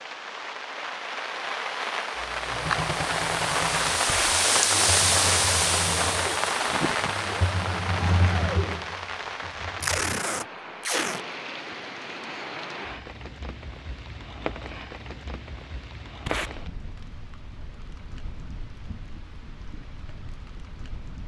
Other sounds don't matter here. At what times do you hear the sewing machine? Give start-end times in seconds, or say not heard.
2.1-10.2.